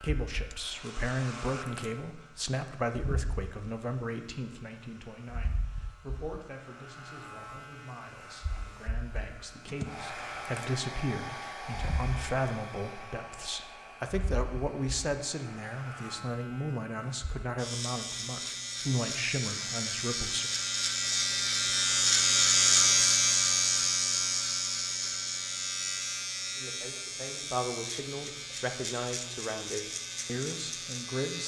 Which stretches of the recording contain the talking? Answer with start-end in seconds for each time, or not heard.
0.0-20.5, 26.6-31.4.